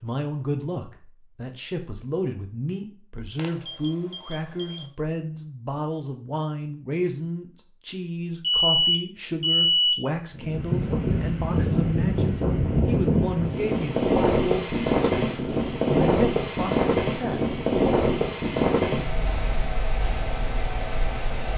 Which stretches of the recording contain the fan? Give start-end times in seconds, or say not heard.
10.3-21.5.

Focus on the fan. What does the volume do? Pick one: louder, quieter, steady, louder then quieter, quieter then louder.
quieter.